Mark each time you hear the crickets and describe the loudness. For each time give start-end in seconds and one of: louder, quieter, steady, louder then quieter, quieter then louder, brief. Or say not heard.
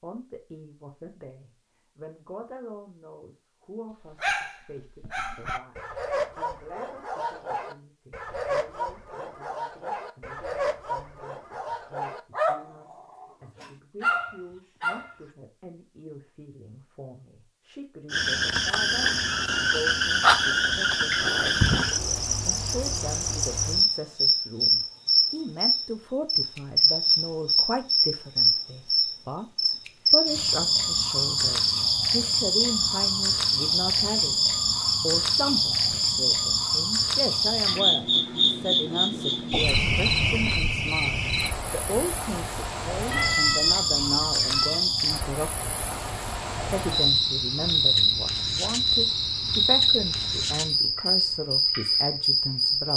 18.1-52.9 steady.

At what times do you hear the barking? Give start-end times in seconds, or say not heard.
4.1-15.2.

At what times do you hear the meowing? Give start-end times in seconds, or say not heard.
43.1-44.8.